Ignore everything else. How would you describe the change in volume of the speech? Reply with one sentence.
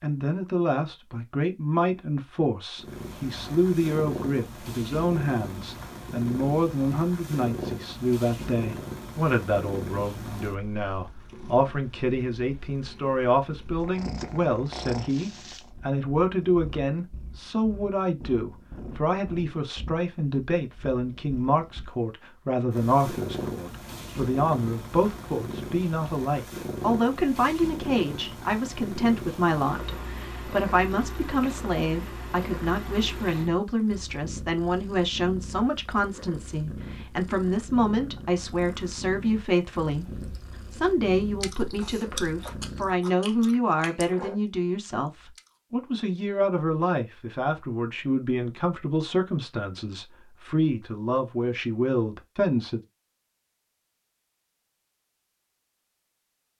The volume of the speech stays about the same.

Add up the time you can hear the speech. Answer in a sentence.
The speech can be heard for 53 seconds in total.